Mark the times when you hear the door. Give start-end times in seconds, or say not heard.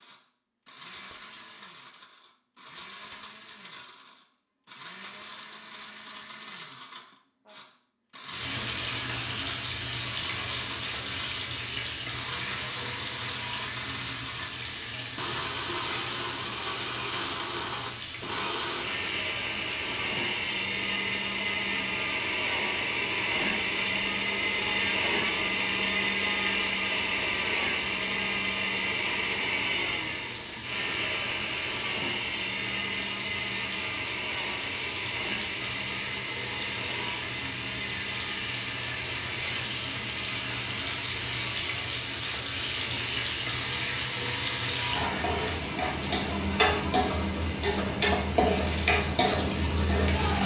not heard.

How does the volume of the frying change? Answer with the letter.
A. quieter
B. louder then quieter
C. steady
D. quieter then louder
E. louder
D.